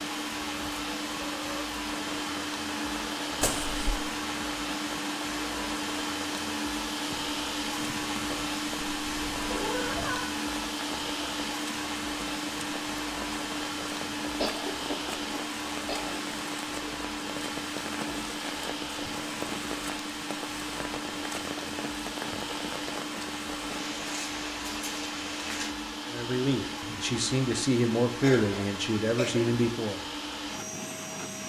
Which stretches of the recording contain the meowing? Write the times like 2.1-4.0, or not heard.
8.8-10.3.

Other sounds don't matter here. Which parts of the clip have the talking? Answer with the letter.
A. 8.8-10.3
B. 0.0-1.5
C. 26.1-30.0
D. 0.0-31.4
C.